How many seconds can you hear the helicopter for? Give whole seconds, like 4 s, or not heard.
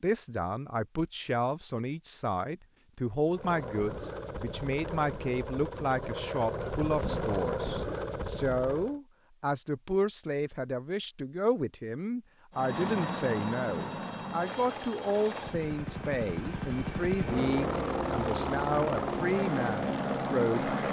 14 s.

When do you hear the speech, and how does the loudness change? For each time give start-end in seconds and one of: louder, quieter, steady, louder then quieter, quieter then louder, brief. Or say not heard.
0.0-20.8 steady.